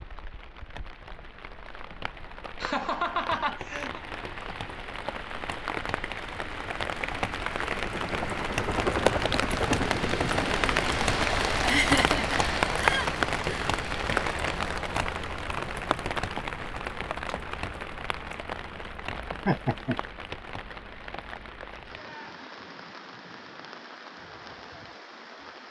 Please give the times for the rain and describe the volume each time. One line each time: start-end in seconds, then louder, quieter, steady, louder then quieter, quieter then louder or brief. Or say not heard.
0.0-25.6 louder then quieter.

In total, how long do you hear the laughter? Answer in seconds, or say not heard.
4 s.